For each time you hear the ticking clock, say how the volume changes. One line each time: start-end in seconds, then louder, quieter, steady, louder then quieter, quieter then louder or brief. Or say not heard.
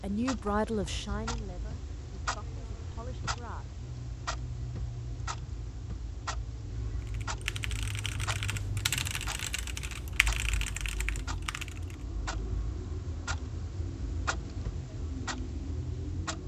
0.0-16.4 steady.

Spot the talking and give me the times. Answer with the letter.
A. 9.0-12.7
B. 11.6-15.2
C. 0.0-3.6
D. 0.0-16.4
C.